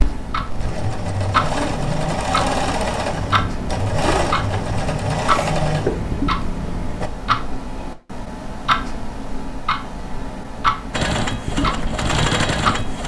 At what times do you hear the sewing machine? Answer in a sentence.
The sewing machine can be heard from 0.0 to 7.1 s and from 10.9 to 13.0 s.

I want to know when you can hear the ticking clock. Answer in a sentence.
You can hear the ticking clock from 0.0 to 13.0 s.